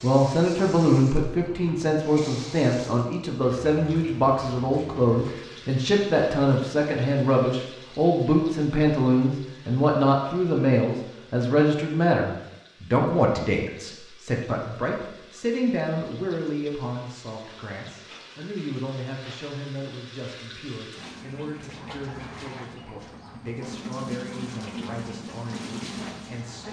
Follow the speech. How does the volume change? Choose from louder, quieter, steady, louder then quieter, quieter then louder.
quieter.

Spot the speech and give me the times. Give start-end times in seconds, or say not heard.
0.0-26.6.